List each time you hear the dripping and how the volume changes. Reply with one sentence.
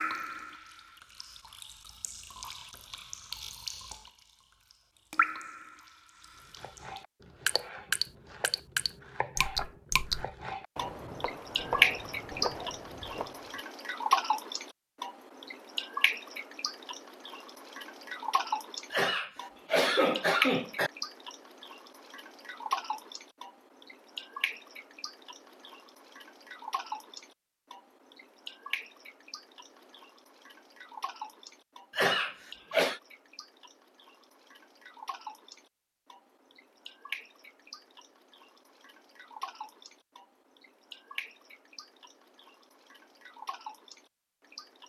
The dripping can be heard from 0.0 to 4.1 s, getting louder; briefly from 5.1 to 5.8 s; and from 6.5 to 44.8 s, getting quieter.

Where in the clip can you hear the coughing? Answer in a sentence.
You can hear the coughing from 18.9 to 20.9 s and from 31.9 to 33.0 s.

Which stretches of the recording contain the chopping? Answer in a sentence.
The chopping can be heard from 6.4 to 13.5 s.